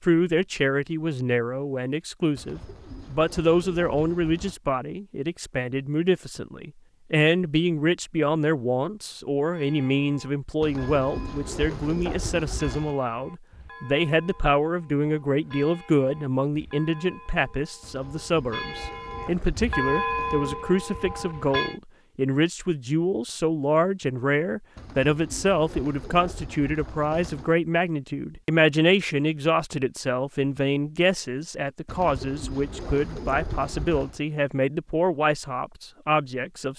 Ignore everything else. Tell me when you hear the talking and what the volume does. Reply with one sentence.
The talking can be heard from 0.0 to 36.7 s, at a steady volume.